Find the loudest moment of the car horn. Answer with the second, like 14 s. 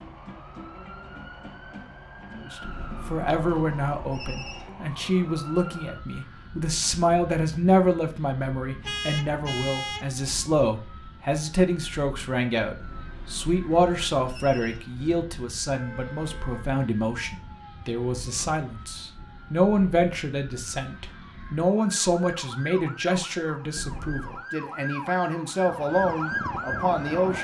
9 s.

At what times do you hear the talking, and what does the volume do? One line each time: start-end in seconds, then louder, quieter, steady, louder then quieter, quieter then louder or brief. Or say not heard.
2.4-27.3 steady.